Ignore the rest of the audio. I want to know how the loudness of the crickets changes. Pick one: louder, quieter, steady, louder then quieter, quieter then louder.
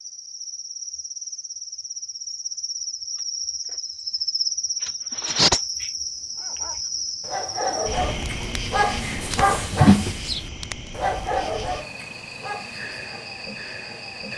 louder then quieter.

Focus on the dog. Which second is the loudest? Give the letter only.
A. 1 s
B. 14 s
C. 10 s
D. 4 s
C.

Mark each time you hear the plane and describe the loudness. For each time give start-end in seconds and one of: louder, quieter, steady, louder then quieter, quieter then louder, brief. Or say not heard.
not heard.